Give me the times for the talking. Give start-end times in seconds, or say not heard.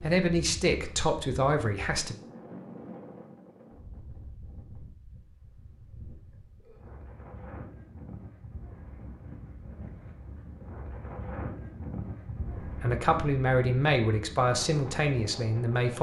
0.0-2.1, 12.6-15.9.